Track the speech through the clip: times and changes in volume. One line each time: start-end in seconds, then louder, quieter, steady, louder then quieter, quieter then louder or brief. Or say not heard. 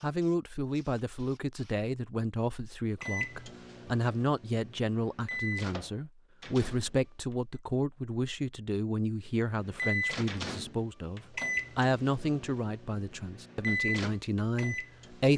0.0-15.3 steady.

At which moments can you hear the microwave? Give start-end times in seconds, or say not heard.
3.0-7.5, 9.5-15.3.